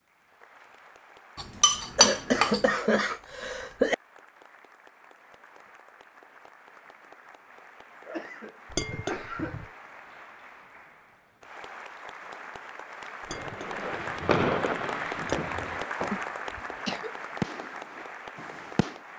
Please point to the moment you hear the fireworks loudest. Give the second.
14 s.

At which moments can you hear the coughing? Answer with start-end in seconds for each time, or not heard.
1.9-4.0, 8.1-9.7, 16.1-17.1.